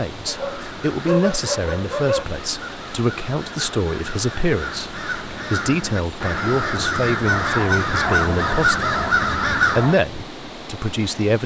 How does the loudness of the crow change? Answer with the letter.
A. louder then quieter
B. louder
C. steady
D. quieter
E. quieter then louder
B.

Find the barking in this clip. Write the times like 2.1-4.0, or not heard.
0.2-2.2, 7.2-9.9.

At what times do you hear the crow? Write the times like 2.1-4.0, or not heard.
0.2-9.9.